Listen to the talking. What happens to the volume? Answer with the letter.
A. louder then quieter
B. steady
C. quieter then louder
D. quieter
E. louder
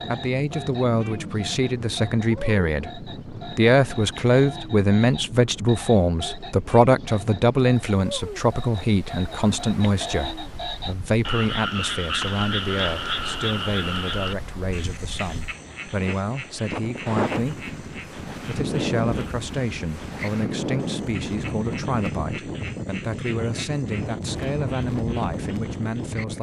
D.